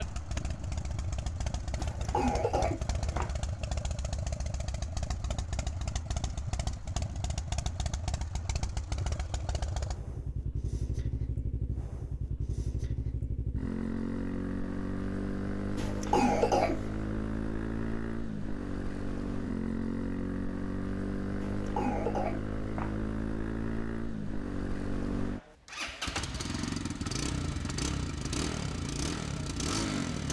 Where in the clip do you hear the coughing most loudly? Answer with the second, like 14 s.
16 s.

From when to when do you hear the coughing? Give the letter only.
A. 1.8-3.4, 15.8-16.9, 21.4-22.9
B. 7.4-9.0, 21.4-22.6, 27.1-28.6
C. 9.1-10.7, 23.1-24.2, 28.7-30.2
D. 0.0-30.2
A.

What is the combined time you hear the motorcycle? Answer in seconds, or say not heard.
30 s.